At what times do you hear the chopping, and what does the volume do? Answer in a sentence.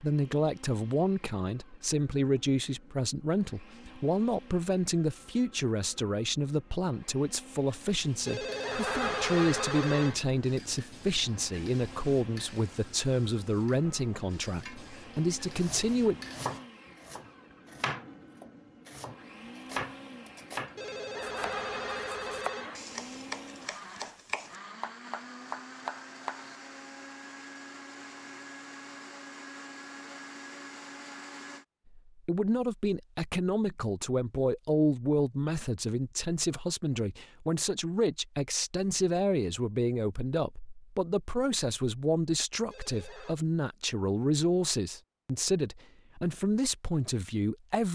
You can hear the chopping from 14.7 to 26.6 s, at a steady volume.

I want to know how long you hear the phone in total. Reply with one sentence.
You can hear the phone for 5 seconds altogether.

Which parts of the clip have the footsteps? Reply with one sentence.
The footsteps can't be heard in this clip.